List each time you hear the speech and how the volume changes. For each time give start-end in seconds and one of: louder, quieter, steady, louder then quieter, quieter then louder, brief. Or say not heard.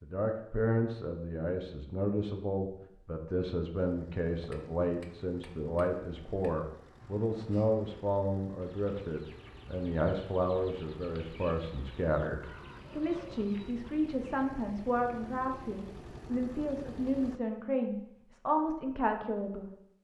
0.0-19.7 steady.